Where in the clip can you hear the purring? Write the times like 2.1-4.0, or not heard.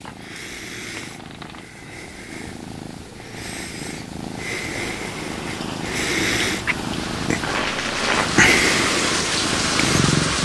0.0-10.4.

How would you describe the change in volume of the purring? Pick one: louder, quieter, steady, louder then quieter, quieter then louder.
louder.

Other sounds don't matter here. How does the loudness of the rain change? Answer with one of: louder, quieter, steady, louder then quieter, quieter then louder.
louder.